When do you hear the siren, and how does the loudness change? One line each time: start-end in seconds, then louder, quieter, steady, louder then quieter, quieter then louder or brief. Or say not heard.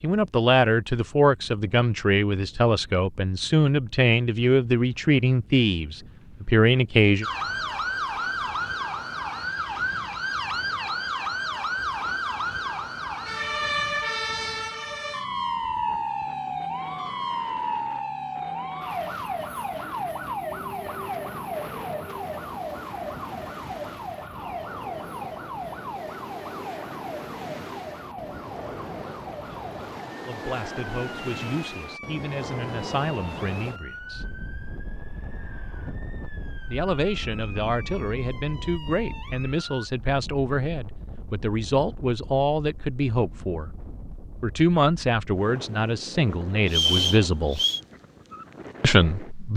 7.2-39.9 quieter.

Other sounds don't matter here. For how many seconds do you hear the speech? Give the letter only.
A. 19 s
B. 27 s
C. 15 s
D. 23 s
D.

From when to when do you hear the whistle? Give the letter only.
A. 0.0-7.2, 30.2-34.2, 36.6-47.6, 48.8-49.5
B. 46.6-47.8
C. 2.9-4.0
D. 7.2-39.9
B.